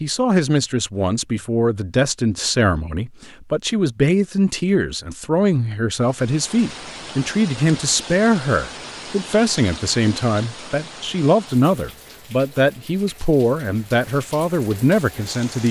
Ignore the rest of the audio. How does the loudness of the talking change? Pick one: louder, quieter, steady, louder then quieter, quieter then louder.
steady.